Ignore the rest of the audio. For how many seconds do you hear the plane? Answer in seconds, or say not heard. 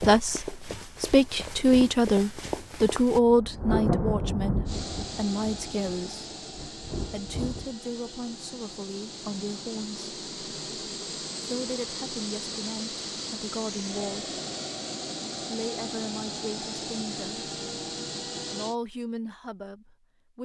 14 s.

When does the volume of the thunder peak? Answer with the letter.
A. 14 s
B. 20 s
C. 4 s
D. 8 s
C.